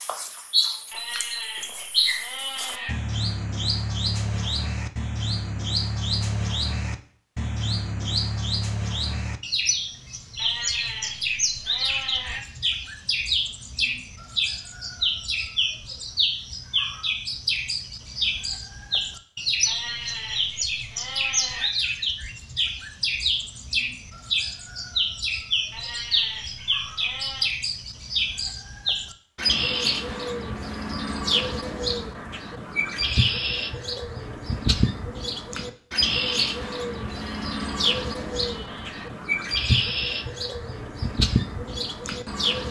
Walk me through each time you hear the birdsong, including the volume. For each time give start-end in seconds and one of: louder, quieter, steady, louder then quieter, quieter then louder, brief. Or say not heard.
0.0-42.6 steady.